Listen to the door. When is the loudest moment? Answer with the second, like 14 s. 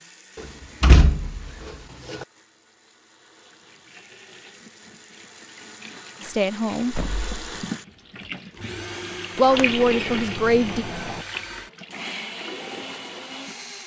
1 s.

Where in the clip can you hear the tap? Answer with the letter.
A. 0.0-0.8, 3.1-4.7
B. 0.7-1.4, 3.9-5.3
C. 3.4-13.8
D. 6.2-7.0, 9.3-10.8
C.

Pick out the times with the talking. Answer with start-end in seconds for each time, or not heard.
6.2-7.0, 9.3-10.8.